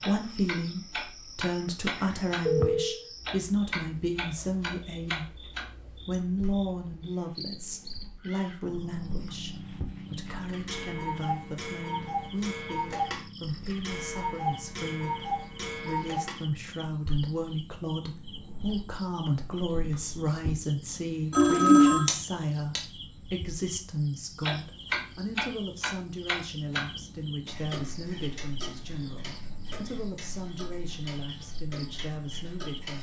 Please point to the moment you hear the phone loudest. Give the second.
22 s.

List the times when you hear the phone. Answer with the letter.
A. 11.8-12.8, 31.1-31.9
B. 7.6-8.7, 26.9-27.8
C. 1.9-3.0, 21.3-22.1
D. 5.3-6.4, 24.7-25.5
C.